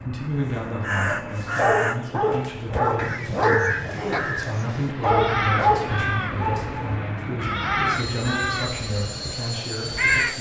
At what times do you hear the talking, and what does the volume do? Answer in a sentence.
The talking can be heard from 0.0 to 10.3 s, at a steady volume.